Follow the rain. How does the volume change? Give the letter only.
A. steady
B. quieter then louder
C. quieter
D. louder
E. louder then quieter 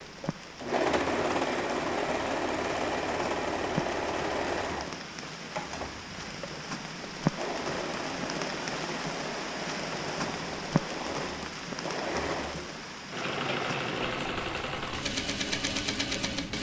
E.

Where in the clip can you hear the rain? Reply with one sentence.
You can hear the rain from 0.0 to 16.5 s.